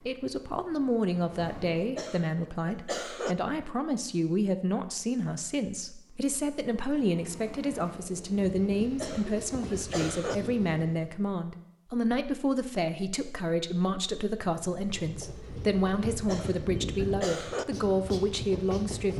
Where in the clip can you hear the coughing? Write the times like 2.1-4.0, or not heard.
1.8-3.4, 8.8-10.3, 16.1-17.6.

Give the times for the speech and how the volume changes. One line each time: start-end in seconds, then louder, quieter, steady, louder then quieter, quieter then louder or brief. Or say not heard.
0.0-19.1 steady.